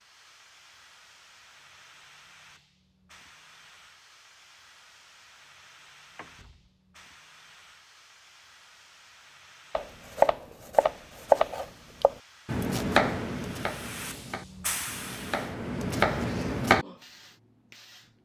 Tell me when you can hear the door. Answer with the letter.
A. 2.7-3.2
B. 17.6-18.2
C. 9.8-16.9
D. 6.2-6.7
D.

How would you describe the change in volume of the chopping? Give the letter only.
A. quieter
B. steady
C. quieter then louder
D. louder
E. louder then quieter
C.